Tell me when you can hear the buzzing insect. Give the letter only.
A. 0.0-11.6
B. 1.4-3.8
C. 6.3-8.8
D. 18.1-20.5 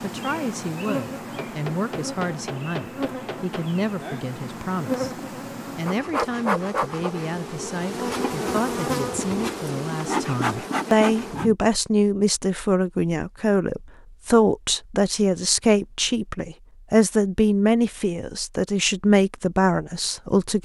A.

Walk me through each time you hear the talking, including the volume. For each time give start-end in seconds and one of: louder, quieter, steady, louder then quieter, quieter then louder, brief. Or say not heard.
0.0-20.5 louder.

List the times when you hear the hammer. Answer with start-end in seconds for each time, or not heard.
1.4-3.8.